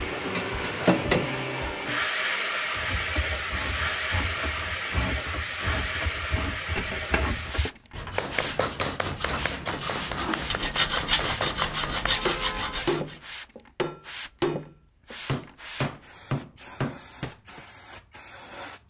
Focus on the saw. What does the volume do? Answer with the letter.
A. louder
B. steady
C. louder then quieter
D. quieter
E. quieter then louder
A.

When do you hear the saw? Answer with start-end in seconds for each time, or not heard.
2.8-13.2.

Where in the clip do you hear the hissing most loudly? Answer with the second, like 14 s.
1 s.